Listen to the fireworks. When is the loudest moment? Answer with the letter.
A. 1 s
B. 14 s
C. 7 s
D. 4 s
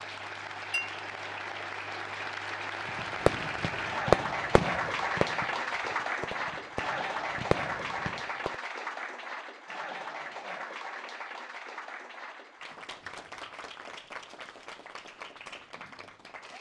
D.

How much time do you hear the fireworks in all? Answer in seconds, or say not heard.
6 s.